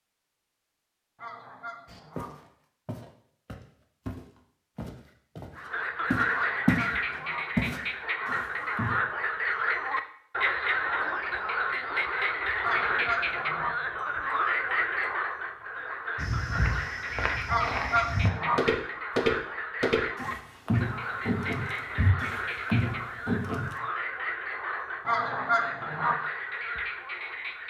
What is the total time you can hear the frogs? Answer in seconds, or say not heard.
22 s.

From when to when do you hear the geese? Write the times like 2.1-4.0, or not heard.
1.1-2.3, 6.3-7.5, 12.6-13.8, 17.4-18.6, 25.1-26.1.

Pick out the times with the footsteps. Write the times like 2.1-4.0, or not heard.
1.9-6.9, 7.5-9.0, 16.1-23.8.